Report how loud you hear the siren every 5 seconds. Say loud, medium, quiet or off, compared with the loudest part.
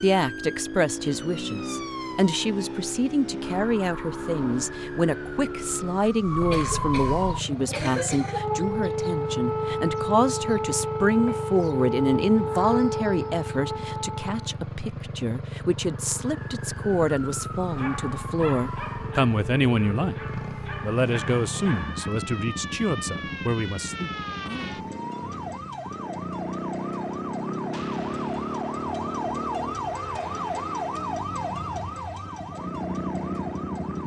medium, loud, loud, medium, medium, loud, loud.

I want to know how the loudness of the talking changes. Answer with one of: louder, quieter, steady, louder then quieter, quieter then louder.
steady.